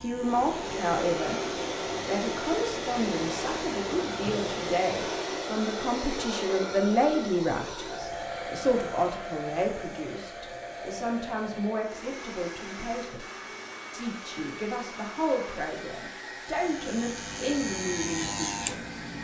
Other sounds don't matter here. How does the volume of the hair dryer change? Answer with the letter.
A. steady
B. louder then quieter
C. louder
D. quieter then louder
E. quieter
E.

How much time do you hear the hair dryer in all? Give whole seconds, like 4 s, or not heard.
19 s.